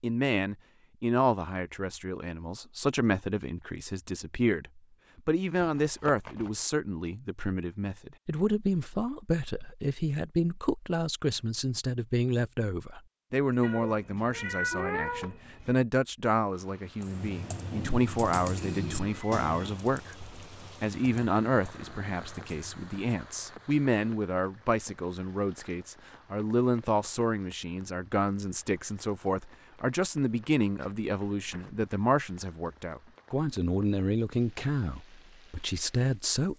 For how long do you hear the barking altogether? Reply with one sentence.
You can't hear the barking here.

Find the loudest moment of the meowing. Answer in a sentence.
The loudest moment of the meowing is at 15 seconds.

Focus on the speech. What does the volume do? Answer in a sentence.
The volume of the speech stays about the same.